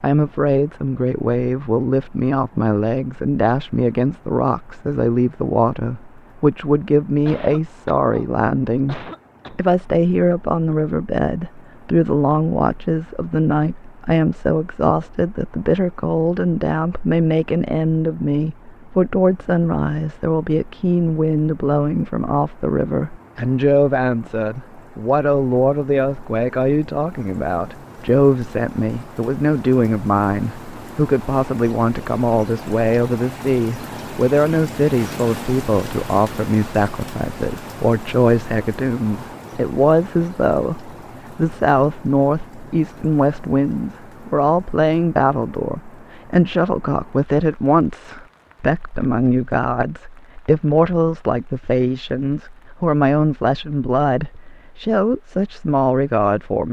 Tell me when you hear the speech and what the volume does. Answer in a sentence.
The speech can be heard from 0.0 to 56.6 s, at a steady volume.